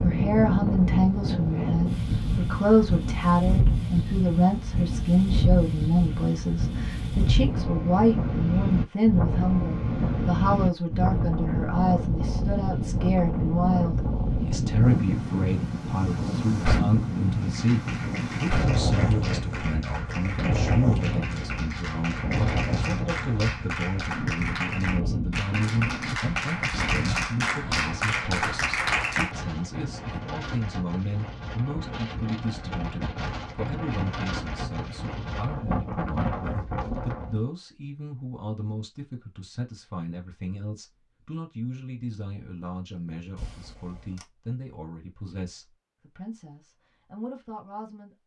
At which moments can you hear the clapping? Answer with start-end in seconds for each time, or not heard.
17.4-29.4.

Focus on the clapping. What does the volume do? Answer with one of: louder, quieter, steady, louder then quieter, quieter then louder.
louder.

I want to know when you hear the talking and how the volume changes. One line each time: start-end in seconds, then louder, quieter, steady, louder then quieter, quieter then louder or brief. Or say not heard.
0.0-48.2 quieter.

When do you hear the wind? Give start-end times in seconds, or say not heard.
0.0-37.5.